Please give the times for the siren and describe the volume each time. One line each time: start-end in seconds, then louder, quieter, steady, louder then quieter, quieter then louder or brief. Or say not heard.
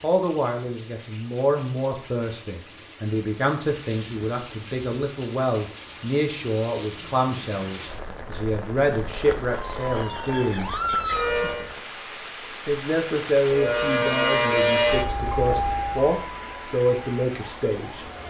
9.6-11.7 brief
13.5-18.2 quieter.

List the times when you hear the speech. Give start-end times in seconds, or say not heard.
0.0-10.7, 12.7-18.1.